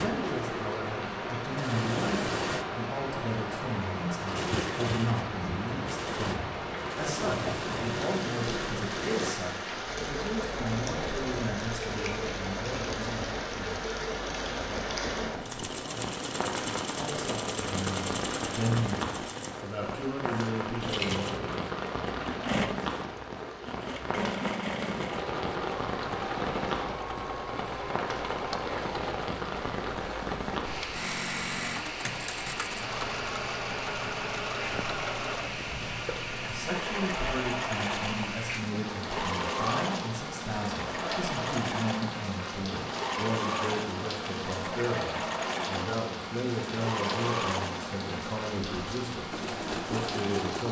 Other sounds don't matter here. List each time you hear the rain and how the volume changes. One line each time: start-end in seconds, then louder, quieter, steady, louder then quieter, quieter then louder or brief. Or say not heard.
0.0-50.6 steady.